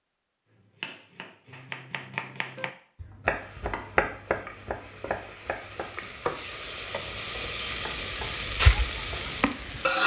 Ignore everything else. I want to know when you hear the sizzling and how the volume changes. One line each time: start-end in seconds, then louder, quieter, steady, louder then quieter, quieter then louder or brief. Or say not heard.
3.3-10.0 louder.